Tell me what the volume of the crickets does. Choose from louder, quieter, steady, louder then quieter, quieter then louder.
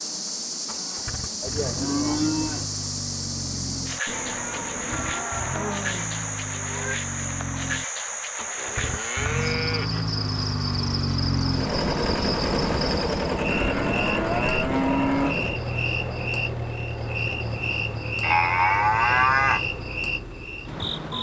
steady.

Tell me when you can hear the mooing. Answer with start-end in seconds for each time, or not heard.
1.4-2.6, 4.8-7.0, 8.6-10.1, 13.5-15.3, 18.2-19.6.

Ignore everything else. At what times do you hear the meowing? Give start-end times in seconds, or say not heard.
4.0-5.3.